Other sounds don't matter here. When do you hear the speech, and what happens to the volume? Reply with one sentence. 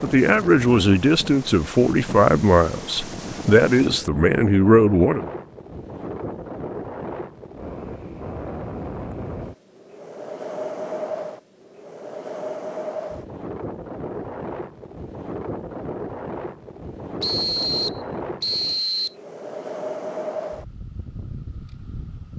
You can hear the speech from 0.0 to 5.2 s, at a steady volume.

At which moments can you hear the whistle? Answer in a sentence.
You can hear the whistle from 17.2 to 19.1 s.